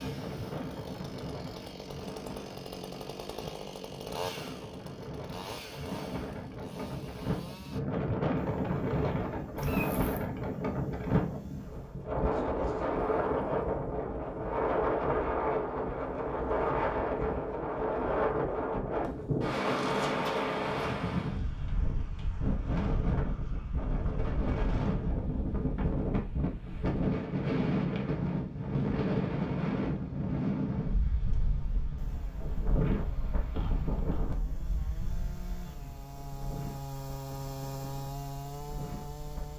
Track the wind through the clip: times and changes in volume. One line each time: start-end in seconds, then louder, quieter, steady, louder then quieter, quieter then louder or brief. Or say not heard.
0.0-39.5 louder then quieter.